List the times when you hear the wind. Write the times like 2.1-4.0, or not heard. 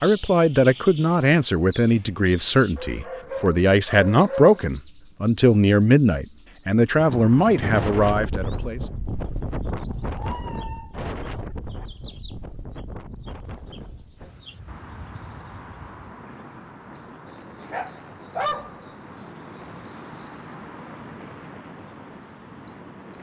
7.0-23.1.